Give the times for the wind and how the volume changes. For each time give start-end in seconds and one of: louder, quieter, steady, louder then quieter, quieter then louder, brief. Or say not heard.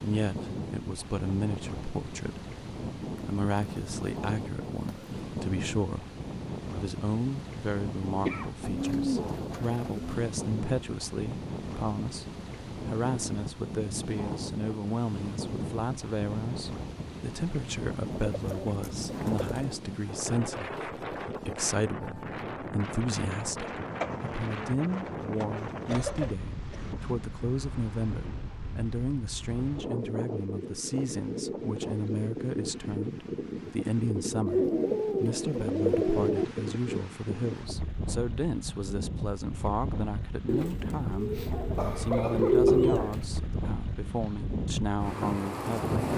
0.0-46.1 steady.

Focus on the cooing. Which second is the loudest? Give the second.
43 s.